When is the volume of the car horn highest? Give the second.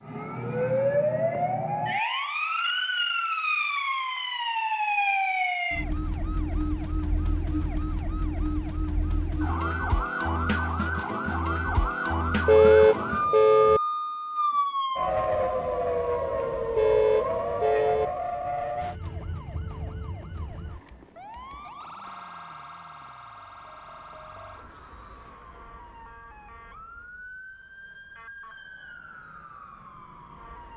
13 s.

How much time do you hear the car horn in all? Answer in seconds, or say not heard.
3 s.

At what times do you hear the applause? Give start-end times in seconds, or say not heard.
not heard.